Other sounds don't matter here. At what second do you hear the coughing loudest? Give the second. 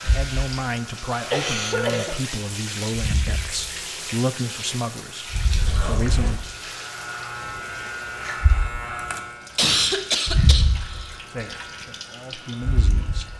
10 s.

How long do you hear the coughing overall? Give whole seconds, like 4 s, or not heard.
3 s.